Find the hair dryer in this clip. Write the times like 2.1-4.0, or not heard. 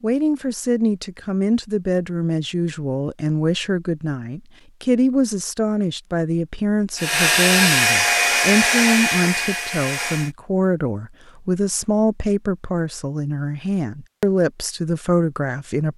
7.0-10.3.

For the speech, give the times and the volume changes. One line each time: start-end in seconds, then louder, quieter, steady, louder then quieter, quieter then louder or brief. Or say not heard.
0.0-15.9 steady.